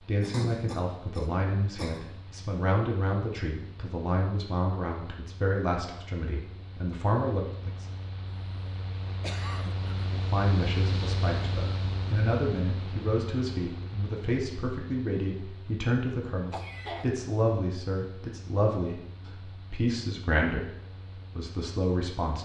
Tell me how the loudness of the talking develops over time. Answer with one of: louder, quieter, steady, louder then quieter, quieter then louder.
steady.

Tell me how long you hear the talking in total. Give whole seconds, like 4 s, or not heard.
20 s.